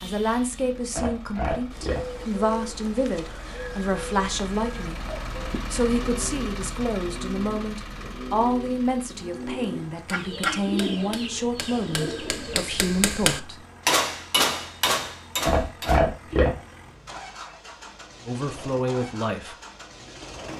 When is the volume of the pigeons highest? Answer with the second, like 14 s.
11 s.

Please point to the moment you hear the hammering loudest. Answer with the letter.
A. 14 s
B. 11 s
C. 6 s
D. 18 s
A.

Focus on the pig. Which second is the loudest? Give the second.
16 s.